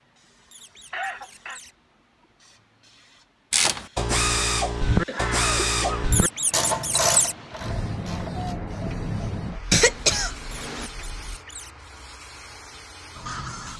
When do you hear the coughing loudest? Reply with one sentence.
The loudest moment of the coughing is at 10 seconds.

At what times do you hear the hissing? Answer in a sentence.
The hissing can be heard from 0.0 to 13.7 s.